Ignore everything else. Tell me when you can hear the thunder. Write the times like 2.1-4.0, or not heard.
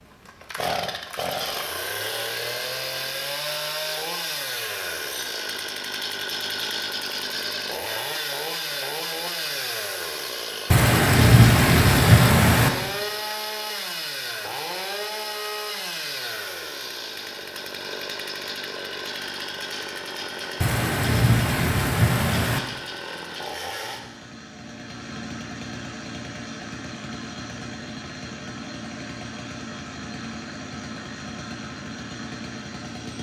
10.7-12.7, 20.6-22.6.